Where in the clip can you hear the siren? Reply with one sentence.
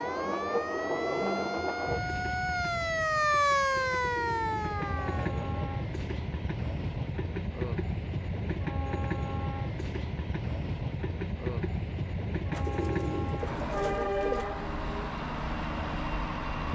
The siren can be heard from 0.0 to 5.3 s.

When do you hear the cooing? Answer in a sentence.
You can hear the cooing from 3.9 to 5.6 s and from 12.5 to 14.5 s.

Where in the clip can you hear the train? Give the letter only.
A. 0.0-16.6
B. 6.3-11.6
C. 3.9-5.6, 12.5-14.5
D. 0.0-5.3
A.